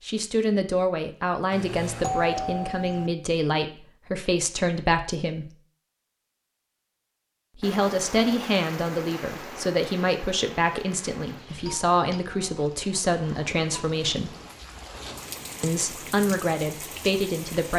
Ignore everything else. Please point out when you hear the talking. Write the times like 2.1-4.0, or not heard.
0.0-5.5, 7.5-14.3, 15.6-17.7.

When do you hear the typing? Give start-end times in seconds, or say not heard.
not heard.